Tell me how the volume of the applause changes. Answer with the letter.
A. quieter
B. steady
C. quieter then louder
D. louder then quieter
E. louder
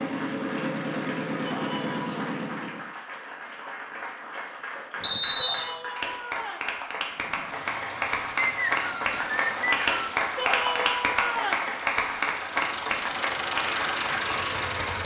E.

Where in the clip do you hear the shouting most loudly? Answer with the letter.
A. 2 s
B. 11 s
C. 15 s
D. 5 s
B.